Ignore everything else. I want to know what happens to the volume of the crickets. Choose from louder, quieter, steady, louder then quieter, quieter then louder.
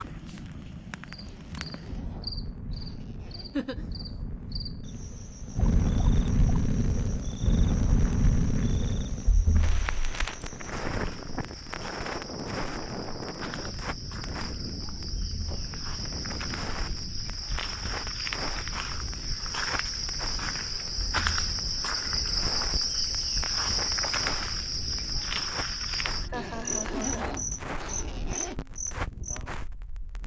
louder.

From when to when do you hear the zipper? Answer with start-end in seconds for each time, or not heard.
1.2-3.8, 26.3-28.6.